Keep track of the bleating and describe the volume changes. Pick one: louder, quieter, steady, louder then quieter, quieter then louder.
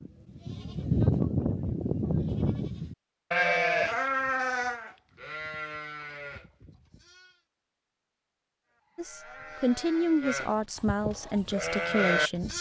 quieter then louder.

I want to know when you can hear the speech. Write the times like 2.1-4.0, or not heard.
8.9-12.5.